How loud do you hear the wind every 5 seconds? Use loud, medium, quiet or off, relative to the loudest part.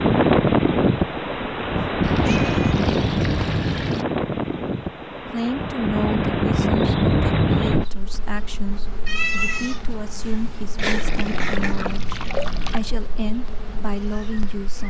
loud, loud, quiet.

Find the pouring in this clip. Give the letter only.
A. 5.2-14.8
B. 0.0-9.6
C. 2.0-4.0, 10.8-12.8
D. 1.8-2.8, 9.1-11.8
C.